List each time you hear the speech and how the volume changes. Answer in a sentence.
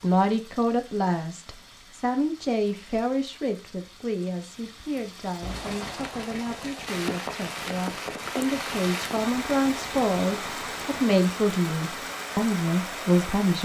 The speech can be heard from 0.0 to 13.6 s, getting quieter then louder.